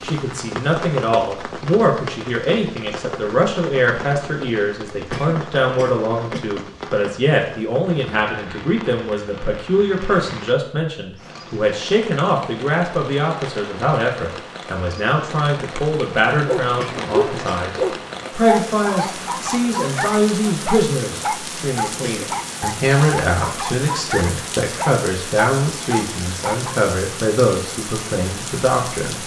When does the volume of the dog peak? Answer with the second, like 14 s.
17 s.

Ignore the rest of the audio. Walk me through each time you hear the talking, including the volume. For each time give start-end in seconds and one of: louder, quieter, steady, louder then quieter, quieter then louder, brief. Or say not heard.
0.0-29.2 steady.